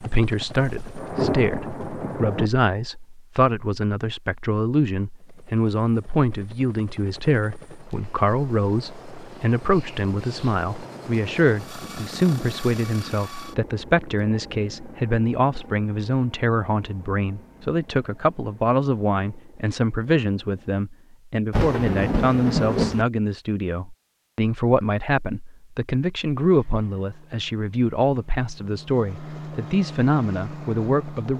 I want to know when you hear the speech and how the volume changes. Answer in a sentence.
You can hear the speech from 0.0 to 31.3 s, at a steady volume.